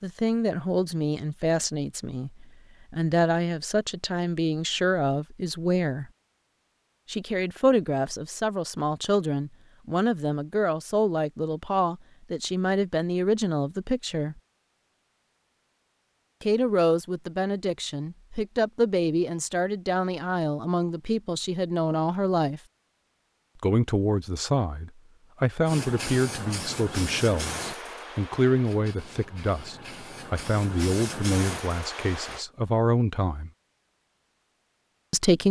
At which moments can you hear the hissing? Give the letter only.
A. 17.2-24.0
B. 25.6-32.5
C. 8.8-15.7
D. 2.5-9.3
B.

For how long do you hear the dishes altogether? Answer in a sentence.
The dishes can't be heard in this clip.